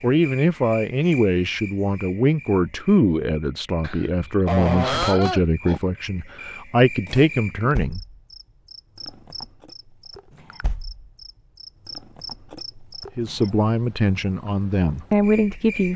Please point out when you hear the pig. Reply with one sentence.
The pig can be heard from 3.8 to 5.8 s.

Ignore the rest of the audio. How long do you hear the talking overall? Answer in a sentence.
You can hear the talking for 11 seconds altogether.